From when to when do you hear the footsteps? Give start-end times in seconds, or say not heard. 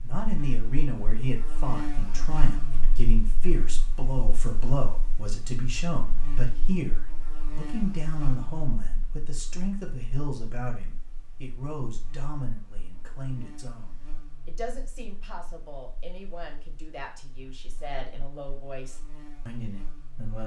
not heard.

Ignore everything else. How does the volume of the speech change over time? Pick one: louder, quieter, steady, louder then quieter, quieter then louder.
quieter.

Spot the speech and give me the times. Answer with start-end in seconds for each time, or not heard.
0.0-20.4.